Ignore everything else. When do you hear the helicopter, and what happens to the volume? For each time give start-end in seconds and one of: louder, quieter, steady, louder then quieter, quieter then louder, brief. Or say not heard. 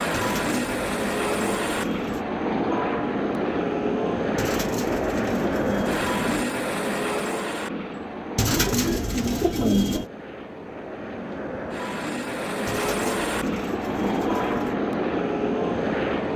0.0-16.3 quieter then louder.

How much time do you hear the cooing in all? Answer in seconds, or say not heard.
8 s.